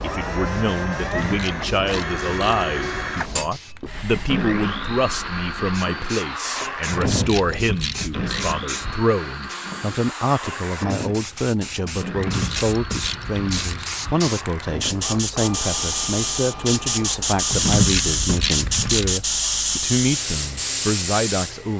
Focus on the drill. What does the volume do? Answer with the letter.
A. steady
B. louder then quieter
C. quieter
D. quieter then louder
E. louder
C.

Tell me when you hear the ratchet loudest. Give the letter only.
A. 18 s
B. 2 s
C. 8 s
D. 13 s
A.